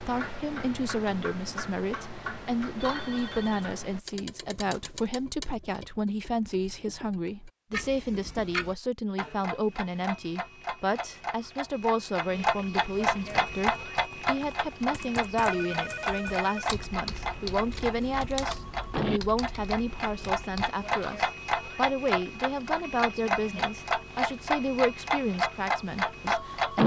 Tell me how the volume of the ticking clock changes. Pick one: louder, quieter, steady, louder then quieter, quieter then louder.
louder.